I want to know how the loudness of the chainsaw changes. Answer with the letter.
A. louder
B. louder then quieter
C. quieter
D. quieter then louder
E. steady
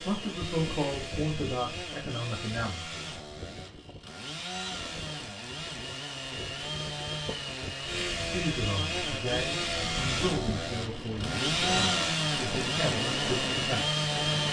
A.